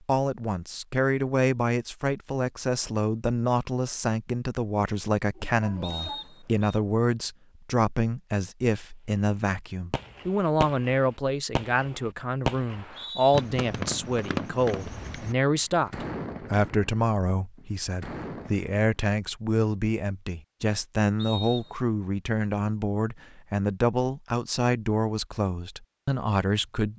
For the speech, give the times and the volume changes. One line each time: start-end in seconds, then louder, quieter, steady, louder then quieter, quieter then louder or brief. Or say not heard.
0.1-26.9 steady.